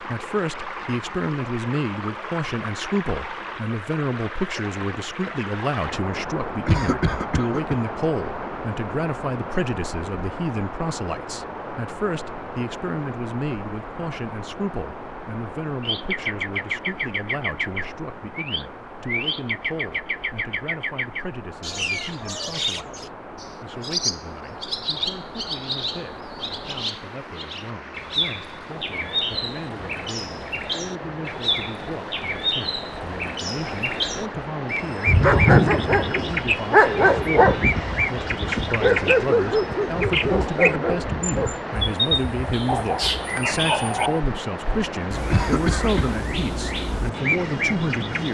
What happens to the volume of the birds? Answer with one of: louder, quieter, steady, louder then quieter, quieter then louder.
steady.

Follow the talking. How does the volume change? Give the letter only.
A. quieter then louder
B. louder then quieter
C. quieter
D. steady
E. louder
A.